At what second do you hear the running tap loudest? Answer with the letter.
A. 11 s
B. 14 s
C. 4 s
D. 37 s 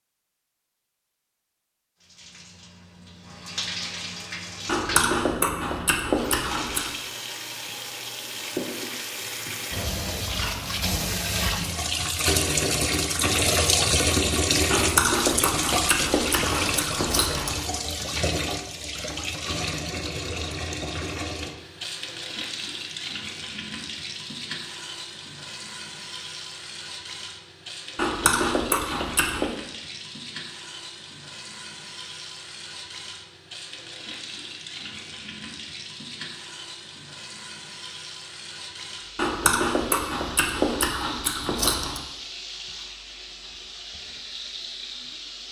B.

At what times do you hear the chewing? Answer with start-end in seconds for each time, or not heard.
4.7-6.9, 14.7-17.6, 27.9-29.5, 39.1-42.0.